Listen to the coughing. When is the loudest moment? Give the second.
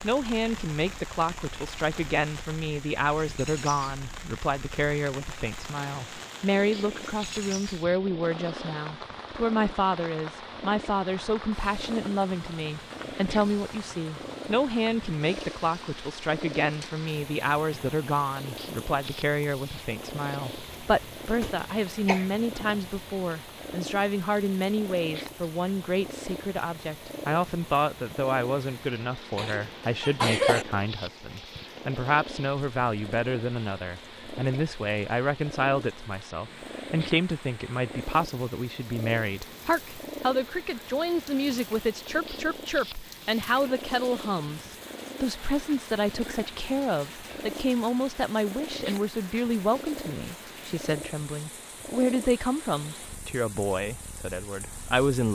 30 s.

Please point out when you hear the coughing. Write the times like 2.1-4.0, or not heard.
20.6-22.2, 29.4-30.6.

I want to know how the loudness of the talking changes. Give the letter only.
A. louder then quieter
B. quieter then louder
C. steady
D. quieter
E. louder
C.